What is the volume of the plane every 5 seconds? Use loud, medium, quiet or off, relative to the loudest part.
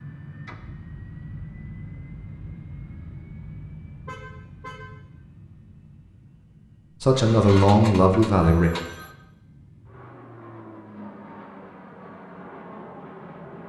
loud, medium, loud.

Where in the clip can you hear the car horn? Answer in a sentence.
The car horn can be heard from 4.0 to 5.0 s.